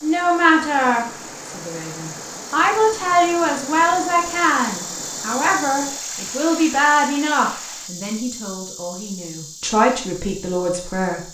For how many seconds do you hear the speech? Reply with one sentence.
The speech can be heard for 11 seconds in total.